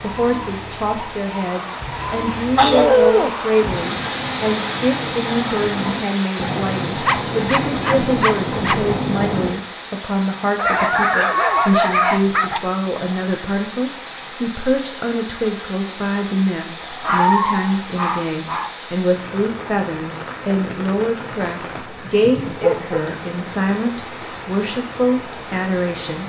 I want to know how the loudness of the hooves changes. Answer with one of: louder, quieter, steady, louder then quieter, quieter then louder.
louder.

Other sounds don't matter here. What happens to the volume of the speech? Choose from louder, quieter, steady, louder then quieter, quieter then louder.
steady.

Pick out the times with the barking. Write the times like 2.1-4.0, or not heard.
2.5-3.4, 7.0-8.9, 10.6-12.6, 17.0-18.7, 22.1-23.1.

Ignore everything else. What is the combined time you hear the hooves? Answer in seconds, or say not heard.
6 s.